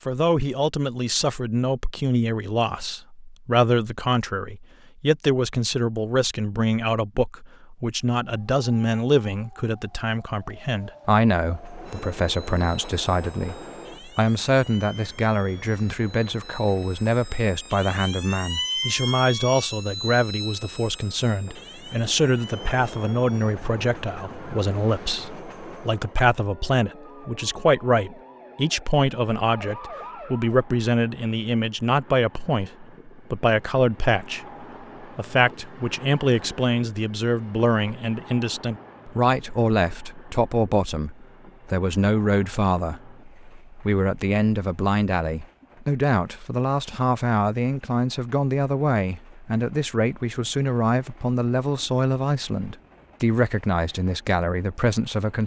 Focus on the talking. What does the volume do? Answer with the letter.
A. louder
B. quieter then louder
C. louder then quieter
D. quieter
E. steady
E.